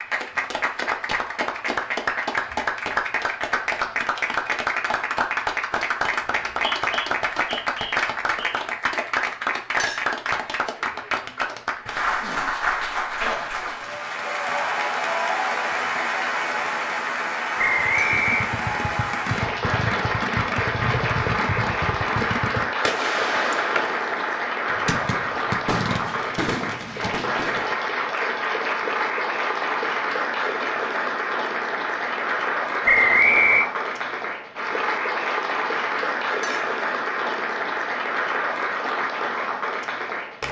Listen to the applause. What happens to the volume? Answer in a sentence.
The loudness of the applause stays about the same.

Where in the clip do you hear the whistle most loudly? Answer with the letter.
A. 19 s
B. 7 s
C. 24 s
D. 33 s
D.